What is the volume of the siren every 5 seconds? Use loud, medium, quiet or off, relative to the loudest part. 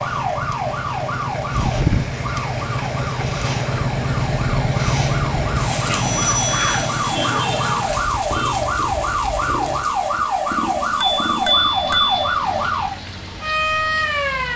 medium, loud, loud.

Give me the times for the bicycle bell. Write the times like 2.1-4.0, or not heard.
1.5-2.1, 6.0-7.5, 11.0-12.2.